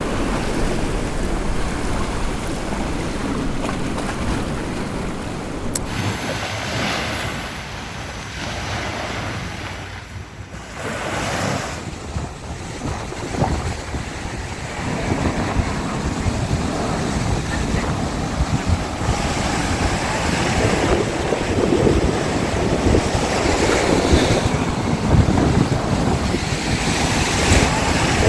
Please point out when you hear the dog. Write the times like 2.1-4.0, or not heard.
not heard.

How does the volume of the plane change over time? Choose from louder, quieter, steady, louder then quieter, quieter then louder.
steady.